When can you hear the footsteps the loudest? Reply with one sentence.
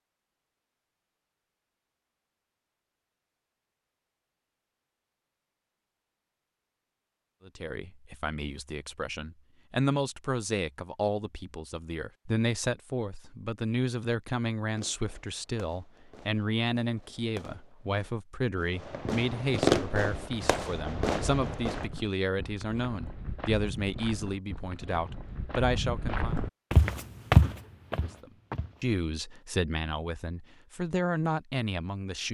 The volume of the footsteps peaks at 27 seconds.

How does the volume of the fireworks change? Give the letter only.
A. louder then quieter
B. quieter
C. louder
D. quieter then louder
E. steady
A.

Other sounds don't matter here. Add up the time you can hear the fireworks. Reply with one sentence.
You can hear the fireworks for 7 seconds altogether.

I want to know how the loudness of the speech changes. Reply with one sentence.
The loudness of the speech stays about the same.